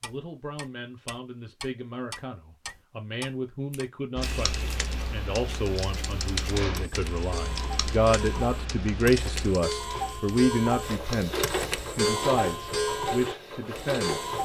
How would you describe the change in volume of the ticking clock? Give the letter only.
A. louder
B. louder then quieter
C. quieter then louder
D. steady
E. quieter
A.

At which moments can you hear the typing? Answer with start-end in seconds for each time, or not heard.
4.2-11.7.